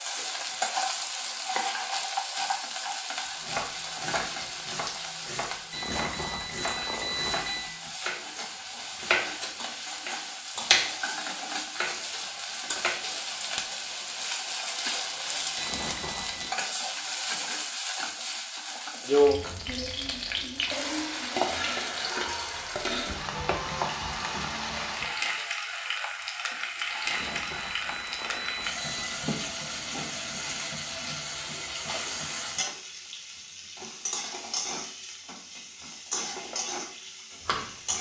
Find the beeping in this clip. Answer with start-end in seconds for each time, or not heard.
5.7-7.7, 15.6-16.6, 27.0-29.1.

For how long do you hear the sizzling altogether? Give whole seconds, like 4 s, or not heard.
38 s.